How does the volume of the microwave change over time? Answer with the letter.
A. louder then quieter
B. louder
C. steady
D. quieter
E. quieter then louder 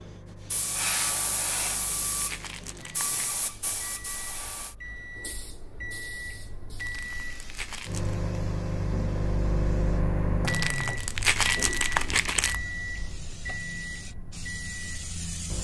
A.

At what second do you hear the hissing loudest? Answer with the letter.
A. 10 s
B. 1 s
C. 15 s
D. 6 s
B.